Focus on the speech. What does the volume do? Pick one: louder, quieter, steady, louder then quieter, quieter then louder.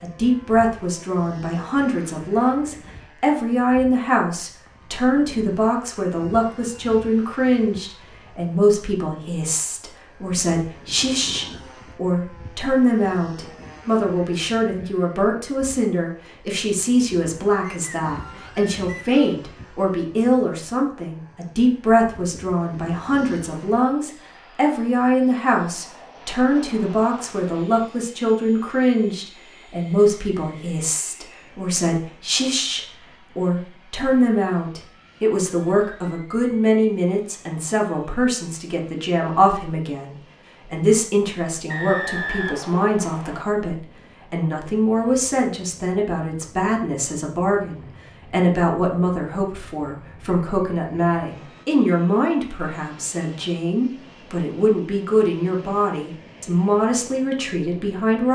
steady.